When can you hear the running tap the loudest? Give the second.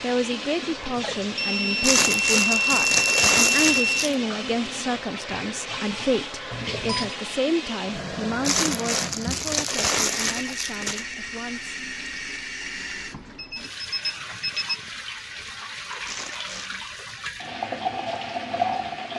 18 s.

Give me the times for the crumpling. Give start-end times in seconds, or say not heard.
1.8-4.2, 8.4-11.1, 16.1-16.8.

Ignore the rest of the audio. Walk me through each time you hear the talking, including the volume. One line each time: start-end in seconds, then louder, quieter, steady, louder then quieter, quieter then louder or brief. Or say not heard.
0.0-11.8 quieter.